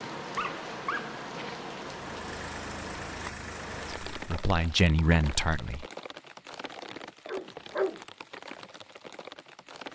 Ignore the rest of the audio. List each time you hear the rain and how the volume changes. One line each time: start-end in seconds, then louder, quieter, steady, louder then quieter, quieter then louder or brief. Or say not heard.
0.0-9.9 quieter.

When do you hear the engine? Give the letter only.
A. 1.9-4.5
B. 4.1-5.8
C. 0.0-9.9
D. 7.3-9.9
A.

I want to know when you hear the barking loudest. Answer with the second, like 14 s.
8 s.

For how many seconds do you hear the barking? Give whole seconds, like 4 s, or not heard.
2 s.